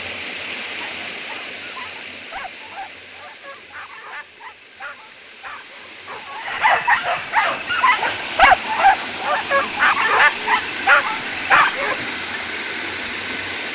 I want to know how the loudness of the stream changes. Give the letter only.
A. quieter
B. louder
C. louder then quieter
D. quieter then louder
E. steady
D.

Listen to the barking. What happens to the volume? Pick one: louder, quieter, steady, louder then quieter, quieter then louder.
louder.